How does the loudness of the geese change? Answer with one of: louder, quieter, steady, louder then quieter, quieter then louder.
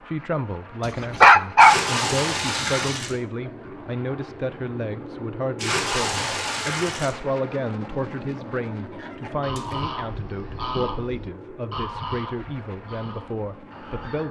quieter.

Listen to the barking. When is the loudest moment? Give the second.
1 s.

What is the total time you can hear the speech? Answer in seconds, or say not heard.
14 s.